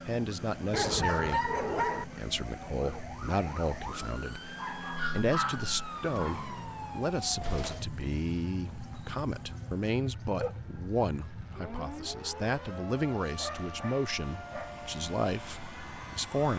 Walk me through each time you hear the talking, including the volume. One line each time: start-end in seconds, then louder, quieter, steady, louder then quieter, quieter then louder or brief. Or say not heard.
0.1-16.5 steady.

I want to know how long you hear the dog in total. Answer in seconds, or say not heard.
6 s.